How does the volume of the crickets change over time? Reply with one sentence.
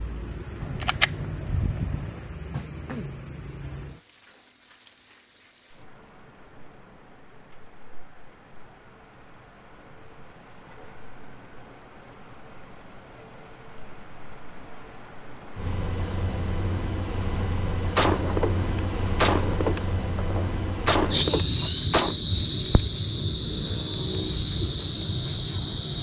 The loudness of the crickets goes down, then up.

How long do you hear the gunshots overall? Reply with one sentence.
The gunshots can be heard for 6 seconds in total.